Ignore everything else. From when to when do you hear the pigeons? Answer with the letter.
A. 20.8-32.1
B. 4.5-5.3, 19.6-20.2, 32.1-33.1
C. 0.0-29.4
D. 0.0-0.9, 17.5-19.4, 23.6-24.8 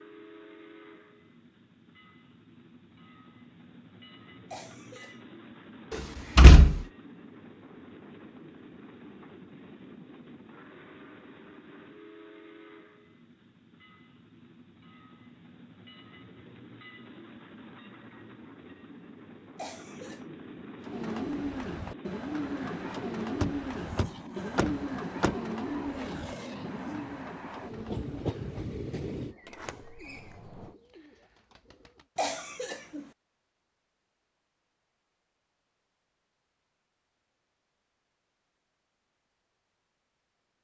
A.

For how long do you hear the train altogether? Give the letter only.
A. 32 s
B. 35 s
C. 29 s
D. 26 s
C.